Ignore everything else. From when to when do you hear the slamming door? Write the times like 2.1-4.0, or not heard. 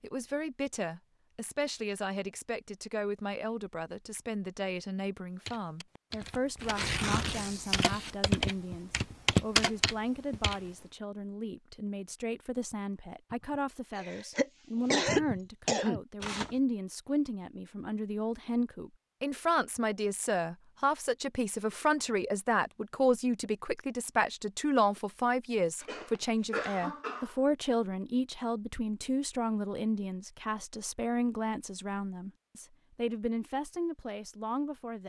not heard.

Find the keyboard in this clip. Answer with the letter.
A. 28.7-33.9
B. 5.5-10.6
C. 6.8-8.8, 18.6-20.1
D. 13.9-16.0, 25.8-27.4
B.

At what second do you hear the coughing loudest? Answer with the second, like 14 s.
15 s.